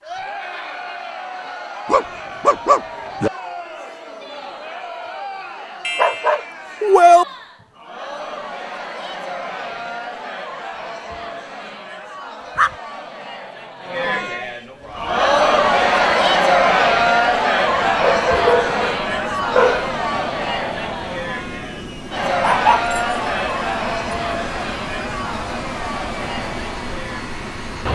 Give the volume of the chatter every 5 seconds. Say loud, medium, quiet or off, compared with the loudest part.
quiet, quiet, quiet, loud, medium, quiet.